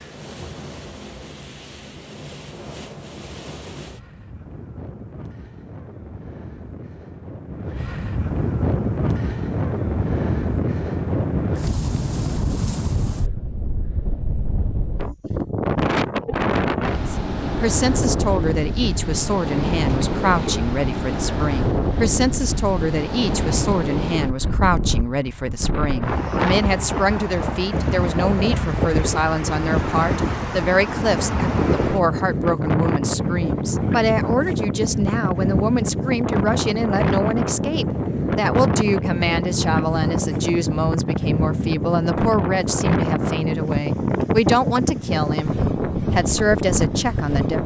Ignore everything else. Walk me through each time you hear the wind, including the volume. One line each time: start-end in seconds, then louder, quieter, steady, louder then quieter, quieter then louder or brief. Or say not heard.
0.0-47.6 louder.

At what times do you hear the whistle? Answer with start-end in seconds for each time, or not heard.
not heard.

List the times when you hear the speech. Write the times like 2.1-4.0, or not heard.
17.1-47.6.